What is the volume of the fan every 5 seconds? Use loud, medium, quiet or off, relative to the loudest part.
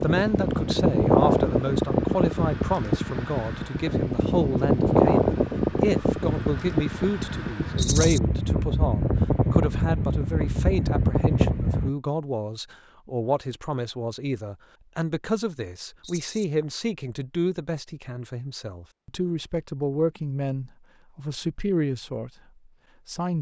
loud, loud, loud, off, off.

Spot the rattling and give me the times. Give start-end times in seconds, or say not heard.
7.8-8.2, 16.0-16.4.